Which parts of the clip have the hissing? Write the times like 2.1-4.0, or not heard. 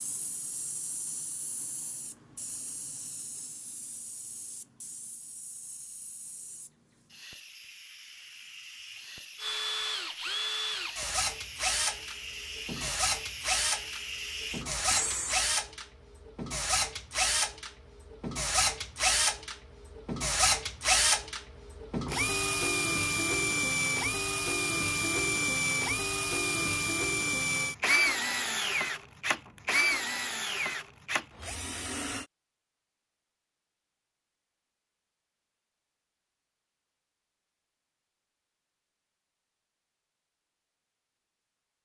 0.0-15.5.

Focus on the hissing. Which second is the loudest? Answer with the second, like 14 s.
15 s.